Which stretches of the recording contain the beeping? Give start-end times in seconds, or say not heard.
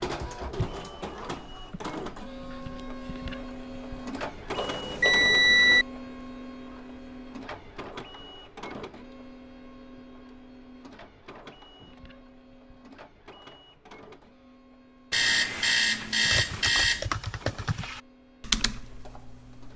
4.5-5.8, 15.1-17.1.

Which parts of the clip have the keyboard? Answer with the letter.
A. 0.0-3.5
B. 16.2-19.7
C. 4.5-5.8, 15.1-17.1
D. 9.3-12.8
B.